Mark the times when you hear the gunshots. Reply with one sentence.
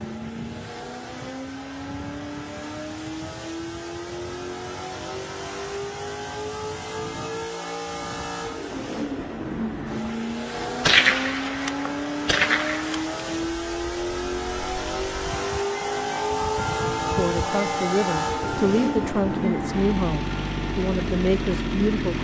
The gunshots can be heard from 10.8 to 13.1 s.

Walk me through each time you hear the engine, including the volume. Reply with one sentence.
The engine can be heard from 0.0 to 22.2 s, getting louder.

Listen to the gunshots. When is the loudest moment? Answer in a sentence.
The loudest moment of the gunshots is at 11 seconds.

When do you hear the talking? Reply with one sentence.
You can hear the talking from 17.1 to 22.2 s.